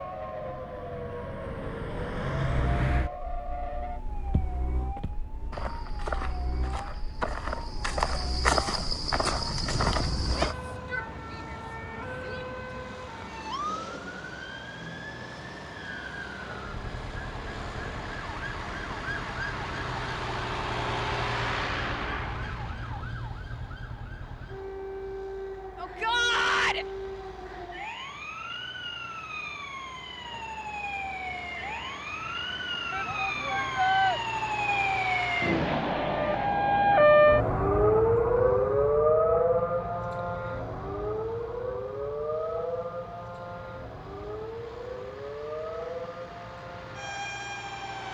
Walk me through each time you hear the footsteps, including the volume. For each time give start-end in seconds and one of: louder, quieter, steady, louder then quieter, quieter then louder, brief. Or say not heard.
4.2-10.6 louder.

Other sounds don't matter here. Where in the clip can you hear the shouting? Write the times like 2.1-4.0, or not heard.
10.3-12.9, 25.8-26.9, 32.9-34.2.